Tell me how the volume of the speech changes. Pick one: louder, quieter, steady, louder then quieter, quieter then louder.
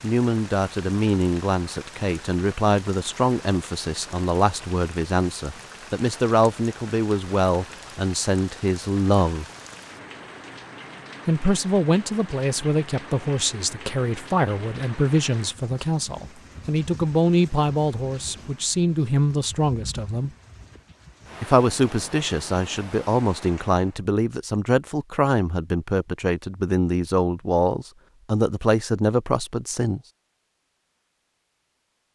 steady.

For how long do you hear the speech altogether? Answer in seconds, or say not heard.
27 s.